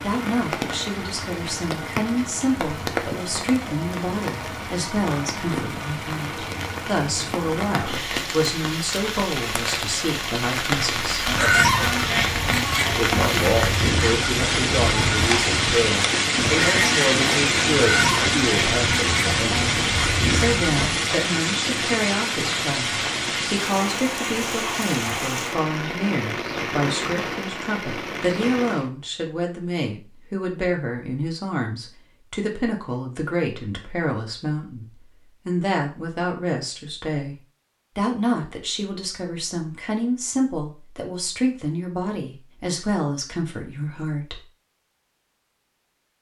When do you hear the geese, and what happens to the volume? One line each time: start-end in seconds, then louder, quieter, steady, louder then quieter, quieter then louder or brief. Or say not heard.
11.2-20.9 steady.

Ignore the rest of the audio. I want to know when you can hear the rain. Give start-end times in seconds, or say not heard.
0.0-28.9.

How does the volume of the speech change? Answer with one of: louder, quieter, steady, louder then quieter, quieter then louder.
steady.